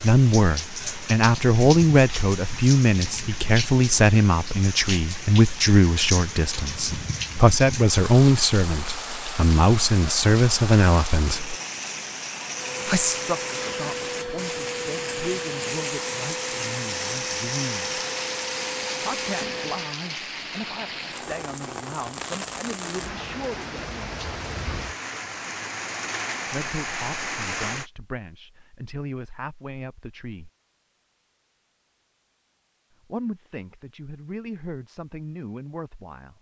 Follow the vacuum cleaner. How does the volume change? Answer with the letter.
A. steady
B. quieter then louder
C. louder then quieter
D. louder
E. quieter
A.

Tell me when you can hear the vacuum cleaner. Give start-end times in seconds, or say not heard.
12.5-19.9.